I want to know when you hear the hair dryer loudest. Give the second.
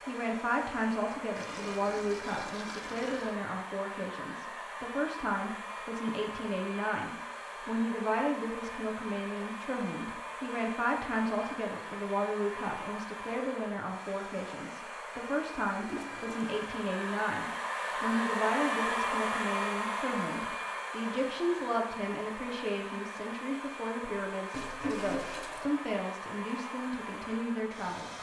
19 s.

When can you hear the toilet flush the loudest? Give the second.
25 s.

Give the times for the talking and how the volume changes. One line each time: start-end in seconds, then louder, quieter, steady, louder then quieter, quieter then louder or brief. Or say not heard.
0.1-28.1 steady.